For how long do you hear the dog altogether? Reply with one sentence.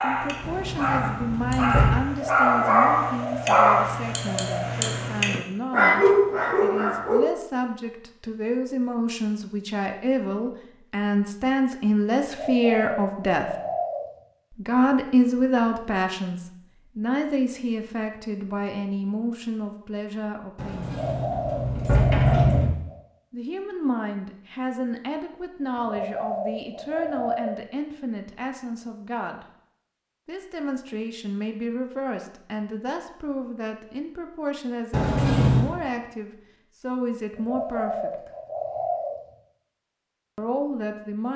You can hear the dog for 7 seconds altogether.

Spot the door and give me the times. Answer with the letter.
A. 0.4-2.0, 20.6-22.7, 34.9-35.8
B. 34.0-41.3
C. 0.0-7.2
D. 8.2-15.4
A.